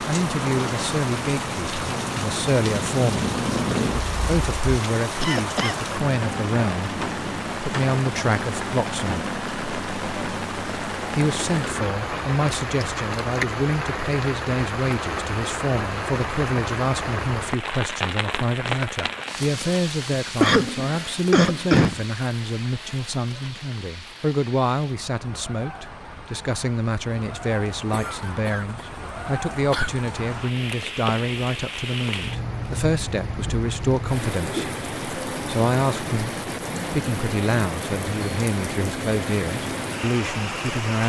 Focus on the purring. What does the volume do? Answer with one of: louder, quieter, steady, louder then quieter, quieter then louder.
louder.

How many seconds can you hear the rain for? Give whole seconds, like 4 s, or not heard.
41 s.